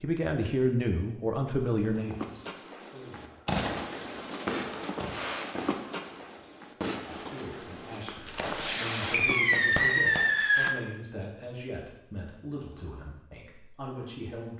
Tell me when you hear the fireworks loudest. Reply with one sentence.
The loudest moment of the fireworks is at 10 seconds.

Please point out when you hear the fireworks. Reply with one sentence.
You can hear the fireworks from 3.5 to 10.8 s.